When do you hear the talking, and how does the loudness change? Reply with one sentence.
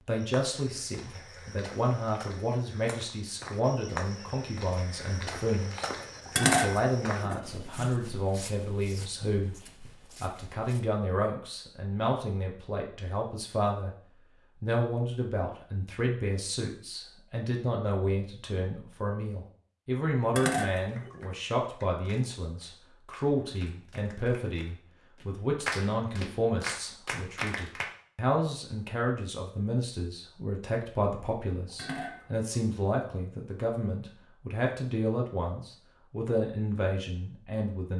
You can hear the talking from 0.1 to 13.9 s, at a steady volume; and from 14.6 to 37.9 s, at a steady volume.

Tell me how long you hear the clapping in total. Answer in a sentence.
The clapping can be heard for 7 seconds in total.